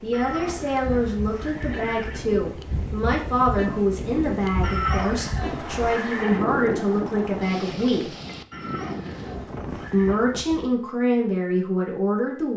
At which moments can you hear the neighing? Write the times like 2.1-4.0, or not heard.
0.1-2.3, 4.6-6.4, 8.5-10.2.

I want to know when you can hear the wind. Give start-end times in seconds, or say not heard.
0.0-10.8.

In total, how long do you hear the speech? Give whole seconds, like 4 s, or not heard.
11 s.